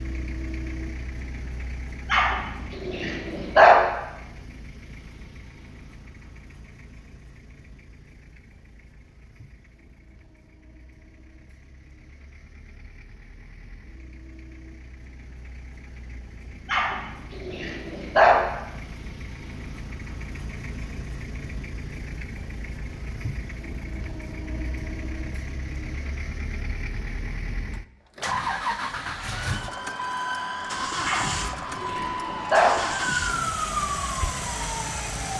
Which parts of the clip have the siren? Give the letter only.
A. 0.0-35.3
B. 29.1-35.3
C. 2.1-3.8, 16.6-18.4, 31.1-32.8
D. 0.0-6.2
B.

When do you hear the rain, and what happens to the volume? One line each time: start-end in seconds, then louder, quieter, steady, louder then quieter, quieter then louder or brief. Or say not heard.
not heard.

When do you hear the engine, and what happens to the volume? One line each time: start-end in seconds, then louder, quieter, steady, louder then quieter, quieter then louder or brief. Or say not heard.
0.0-35.3 quieter then louder.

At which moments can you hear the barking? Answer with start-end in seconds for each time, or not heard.
2.1-3.8, 16.6-18.4, 31.1-32.8.